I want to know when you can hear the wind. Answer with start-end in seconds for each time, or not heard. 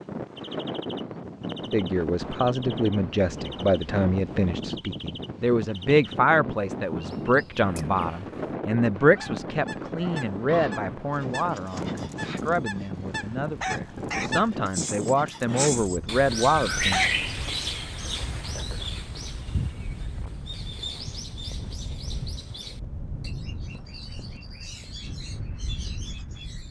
0.0-26.6.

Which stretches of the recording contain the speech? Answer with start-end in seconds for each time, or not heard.
1.5-17.0.